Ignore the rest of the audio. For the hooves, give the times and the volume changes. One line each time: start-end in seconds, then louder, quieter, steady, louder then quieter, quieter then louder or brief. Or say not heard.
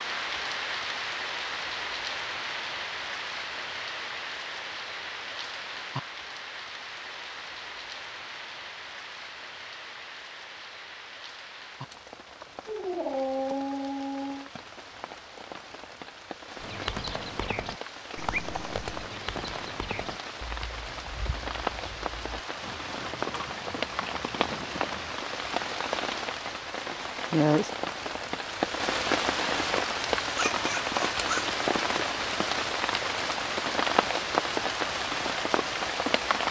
16.6-25.2 quieter then louder.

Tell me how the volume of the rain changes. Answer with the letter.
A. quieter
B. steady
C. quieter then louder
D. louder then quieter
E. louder
C.